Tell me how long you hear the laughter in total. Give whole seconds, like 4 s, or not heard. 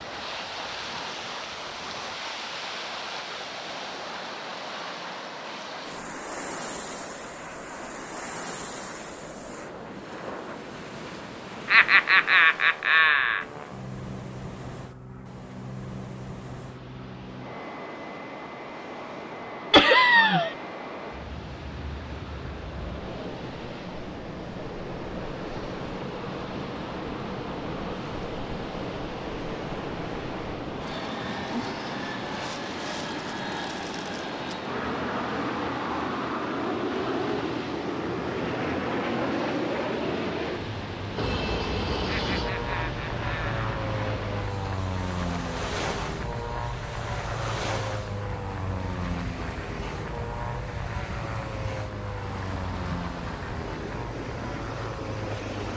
4 s.